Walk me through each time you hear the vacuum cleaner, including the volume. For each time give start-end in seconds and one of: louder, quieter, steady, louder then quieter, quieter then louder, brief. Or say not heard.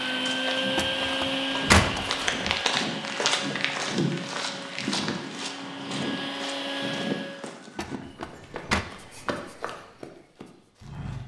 0.0-7.5 quieter then louder.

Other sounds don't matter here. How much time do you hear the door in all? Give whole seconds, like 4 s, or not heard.
3 s.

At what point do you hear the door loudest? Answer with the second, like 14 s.
2 s.